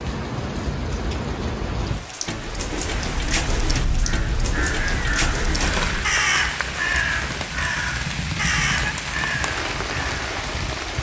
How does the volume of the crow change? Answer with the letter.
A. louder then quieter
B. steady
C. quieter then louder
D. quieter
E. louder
E.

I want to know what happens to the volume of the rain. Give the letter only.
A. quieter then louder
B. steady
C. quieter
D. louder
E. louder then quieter
B.